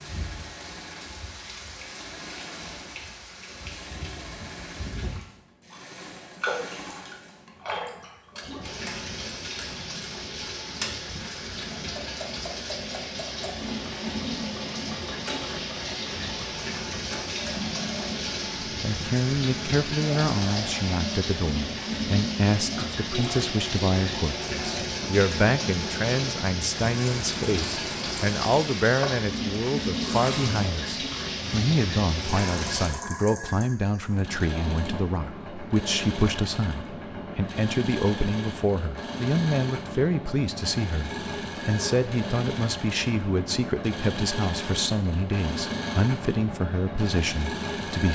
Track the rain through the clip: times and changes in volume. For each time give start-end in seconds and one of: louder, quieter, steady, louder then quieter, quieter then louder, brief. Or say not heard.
0.0-32.9 louder.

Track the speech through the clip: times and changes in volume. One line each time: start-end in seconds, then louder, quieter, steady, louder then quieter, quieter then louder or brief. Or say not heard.
18.8-48.1 steady.